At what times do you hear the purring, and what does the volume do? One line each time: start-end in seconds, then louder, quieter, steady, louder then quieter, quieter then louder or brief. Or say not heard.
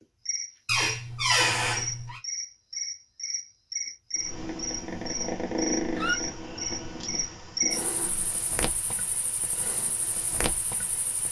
4.2-8.4 louder then quieter.